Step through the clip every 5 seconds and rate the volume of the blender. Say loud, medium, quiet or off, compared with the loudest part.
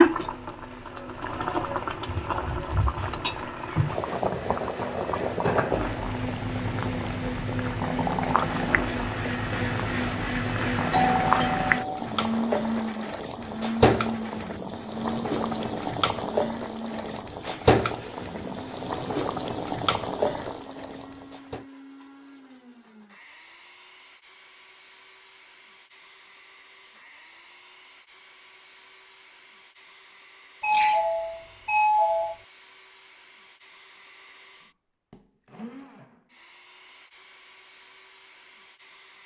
quiet, loud, loud, medium, quiet, quiet, quiet, quiet.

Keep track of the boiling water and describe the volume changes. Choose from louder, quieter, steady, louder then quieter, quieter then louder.
steady.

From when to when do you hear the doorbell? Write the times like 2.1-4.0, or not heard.
10.9-12.0, 30.6-32.4.